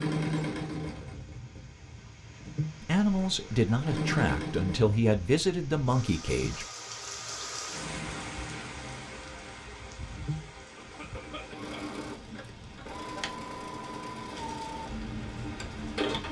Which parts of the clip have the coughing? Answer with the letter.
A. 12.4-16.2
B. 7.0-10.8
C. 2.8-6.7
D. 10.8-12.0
D.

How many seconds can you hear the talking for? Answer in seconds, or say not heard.
4 s.